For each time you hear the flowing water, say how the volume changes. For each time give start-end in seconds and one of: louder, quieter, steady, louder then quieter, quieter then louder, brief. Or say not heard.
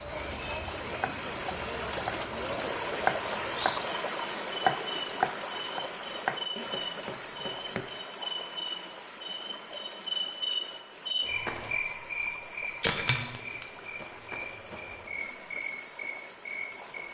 0.0-17.0 quieter.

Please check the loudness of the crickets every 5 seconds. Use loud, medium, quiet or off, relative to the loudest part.
medium, loud, loud, medium.